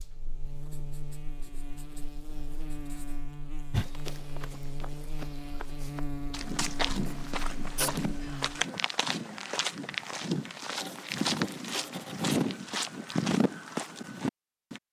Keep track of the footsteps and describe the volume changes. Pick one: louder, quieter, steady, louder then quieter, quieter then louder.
louder.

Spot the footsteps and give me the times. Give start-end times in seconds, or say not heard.
3.7-14.8.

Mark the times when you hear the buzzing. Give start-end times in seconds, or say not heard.
0.0-8.7.